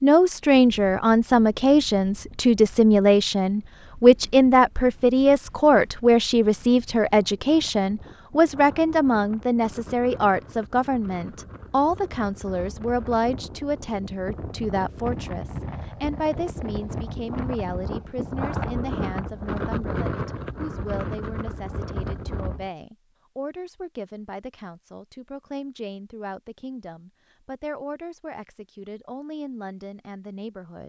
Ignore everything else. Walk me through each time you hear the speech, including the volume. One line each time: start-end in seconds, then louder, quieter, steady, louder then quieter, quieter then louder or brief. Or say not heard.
0.0-30.8 quieter.